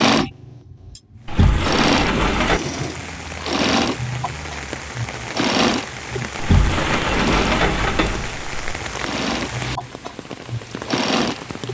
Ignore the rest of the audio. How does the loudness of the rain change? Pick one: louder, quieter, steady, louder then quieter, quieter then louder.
steady.